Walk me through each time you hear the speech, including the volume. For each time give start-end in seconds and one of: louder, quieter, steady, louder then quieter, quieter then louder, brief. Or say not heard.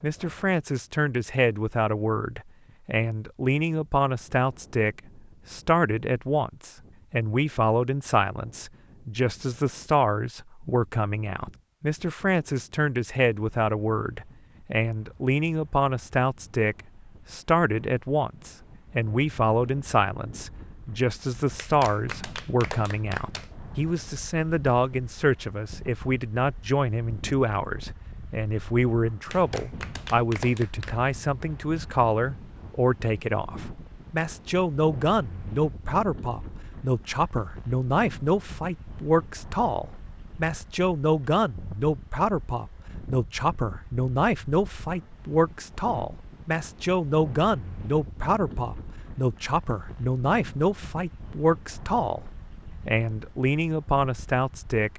0.0-54.9 steady.